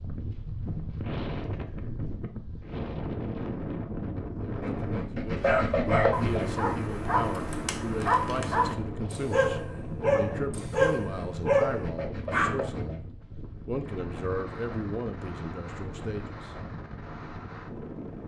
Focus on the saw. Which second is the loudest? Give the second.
6 s.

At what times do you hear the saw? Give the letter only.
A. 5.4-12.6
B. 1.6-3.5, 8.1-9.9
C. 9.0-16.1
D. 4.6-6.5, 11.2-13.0
D.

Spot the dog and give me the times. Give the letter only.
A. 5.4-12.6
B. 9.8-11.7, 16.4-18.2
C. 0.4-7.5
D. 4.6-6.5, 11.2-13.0
A.